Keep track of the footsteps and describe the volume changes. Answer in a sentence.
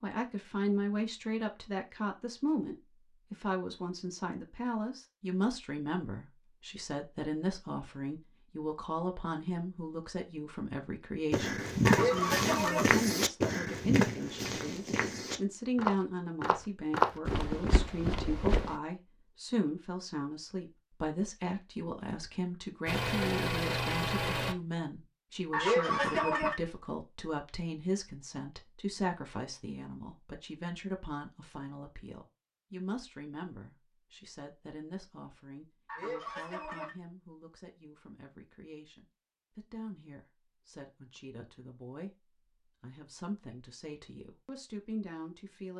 The loudness of the footsteps goes down, then up.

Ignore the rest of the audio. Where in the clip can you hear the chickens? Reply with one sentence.
You can hear the chickens from 11.8 to 12.9 s, from 25.5 to 26.6 s and from 35.9 to 36.9 s.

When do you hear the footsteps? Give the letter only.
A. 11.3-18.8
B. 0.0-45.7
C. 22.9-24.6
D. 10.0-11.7
A.